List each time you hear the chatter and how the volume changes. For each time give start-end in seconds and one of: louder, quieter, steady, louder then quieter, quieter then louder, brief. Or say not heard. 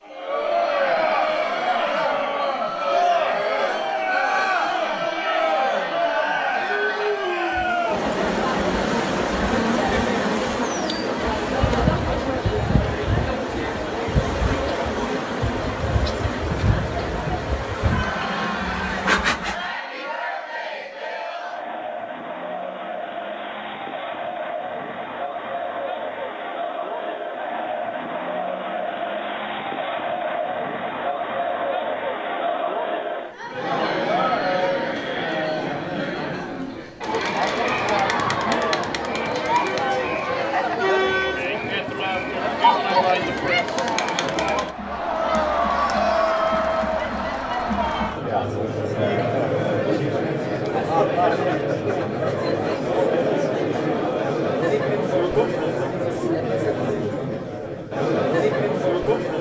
0.1-59.3 quieter then louder.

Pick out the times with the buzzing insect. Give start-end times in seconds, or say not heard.
7.5-19.7.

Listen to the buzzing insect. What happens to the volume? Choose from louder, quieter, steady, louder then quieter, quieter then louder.
steady.